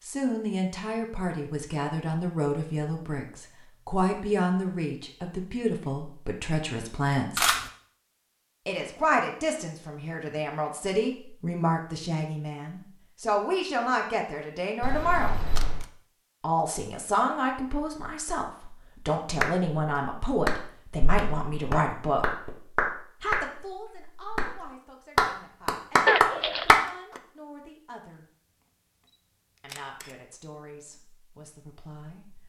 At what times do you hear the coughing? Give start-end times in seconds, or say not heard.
26.1-26.7.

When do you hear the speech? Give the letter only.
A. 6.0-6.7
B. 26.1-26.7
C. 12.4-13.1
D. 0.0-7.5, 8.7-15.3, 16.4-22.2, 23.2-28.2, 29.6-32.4
D.